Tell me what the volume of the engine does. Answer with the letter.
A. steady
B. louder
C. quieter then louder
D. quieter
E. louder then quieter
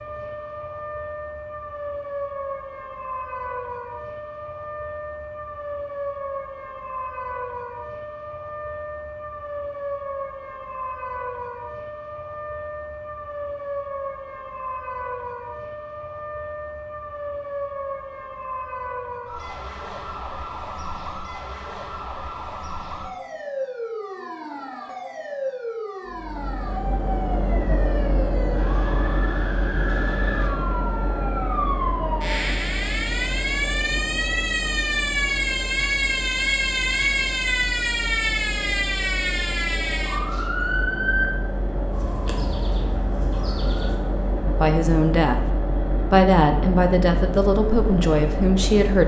C.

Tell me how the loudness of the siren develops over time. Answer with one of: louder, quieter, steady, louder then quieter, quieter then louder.
louder.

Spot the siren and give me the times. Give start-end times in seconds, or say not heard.
0.0-44.0.